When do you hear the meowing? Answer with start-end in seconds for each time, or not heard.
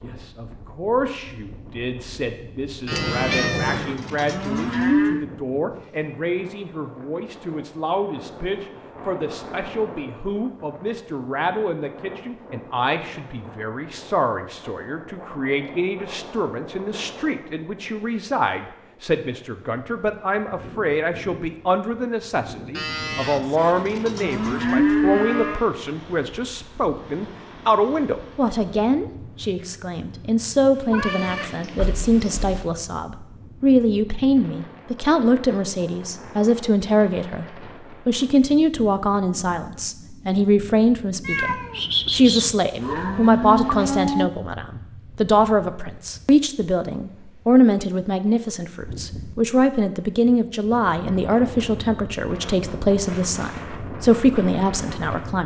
2.9-4.0, 30.9-32.6, 41.2-42.5.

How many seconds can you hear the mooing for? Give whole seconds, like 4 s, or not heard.
7 s.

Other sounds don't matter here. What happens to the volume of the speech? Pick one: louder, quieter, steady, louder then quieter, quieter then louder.
louder.